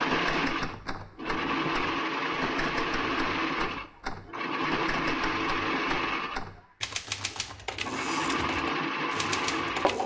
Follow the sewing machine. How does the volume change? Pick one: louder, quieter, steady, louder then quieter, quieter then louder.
steady.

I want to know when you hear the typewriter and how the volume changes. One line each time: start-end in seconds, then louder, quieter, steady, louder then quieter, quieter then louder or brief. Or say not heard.
0.0-10.0 steady.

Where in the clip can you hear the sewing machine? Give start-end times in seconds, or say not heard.
0.0-10.0.